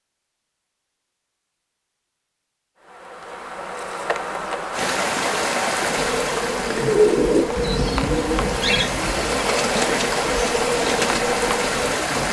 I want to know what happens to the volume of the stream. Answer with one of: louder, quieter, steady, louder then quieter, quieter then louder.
quieter then louder.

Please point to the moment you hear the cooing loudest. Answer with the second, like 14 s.
7 s.